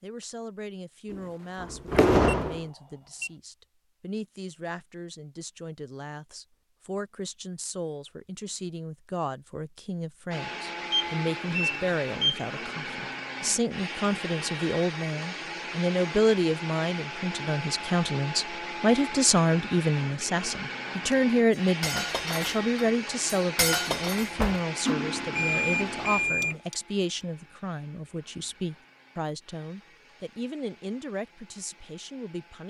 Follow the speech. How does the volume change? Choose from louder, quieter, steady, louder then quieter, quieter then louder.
louder then quieter.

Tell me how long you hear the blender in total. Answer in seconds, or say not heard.
22 s.